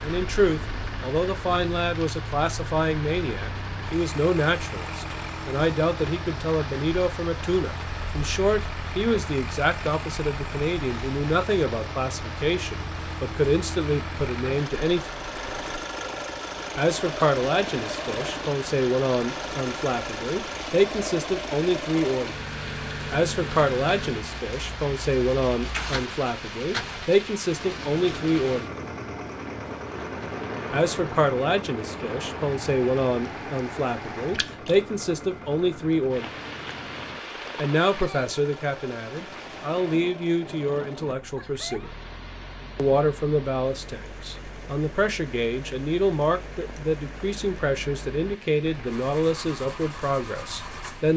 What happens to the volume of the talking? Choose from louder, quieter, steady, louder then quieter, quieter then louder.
steady.